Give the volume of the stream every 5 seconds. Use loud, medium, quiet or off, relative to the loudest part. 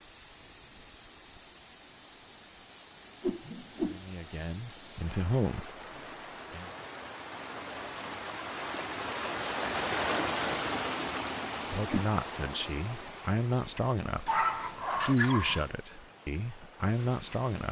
quiet, loud, loud, quiet.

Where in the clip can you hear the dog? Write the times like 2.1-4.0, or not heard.
14.2-15.7.